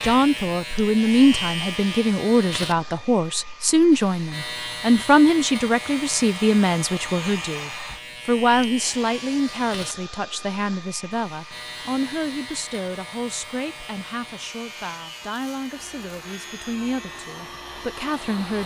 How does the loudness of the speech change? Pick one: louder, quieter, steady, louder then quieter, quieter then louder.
quieter.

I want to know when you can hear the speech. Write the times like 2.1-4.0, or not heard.
0.0-18.6.